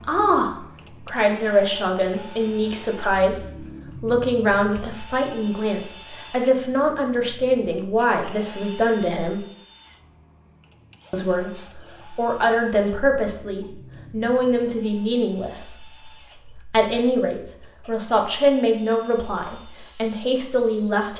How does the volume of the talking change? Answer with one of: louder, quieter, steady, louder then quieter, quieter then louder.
steady.